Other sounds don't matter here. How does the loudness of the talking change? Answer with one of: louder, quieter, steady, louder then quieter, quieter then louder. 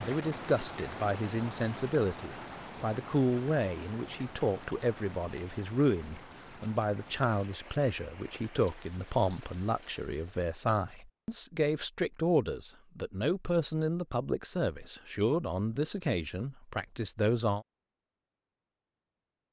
steady.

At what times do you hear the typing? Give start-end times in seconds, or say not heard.
not heard.